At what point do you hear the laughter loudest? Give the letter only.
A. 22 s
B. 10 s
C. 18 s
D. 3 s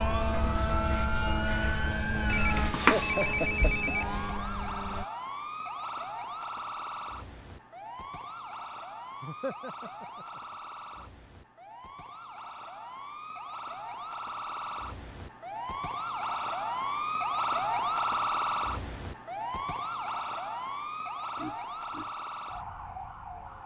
D.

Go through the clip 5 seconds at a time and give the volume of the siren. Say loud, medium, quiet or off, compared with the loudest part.
medium, medium, medium, loud, medium.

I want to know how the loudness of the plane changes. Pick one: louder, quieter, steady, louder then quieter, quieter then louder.
quieter.